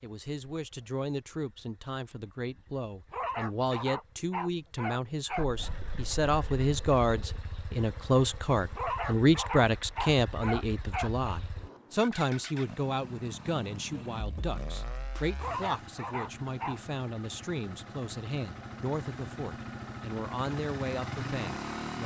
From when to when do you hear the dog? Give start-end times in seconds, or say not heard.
3.1-5.8, 8.8-11.3, 15.3-16.8.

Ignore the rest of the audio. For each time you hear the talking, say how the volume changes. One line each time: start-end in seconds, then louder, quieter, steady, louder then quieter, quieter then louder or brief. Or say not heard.
0.0-22.0 louder then quieter.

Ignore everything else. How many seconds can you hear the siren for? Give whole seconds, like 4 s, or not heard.
not heard.